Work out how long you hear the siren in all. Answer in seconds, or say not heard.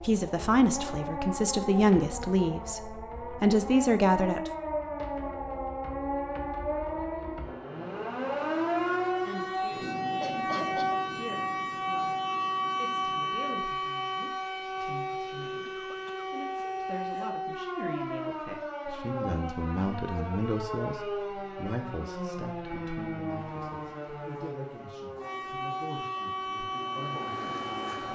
28 s.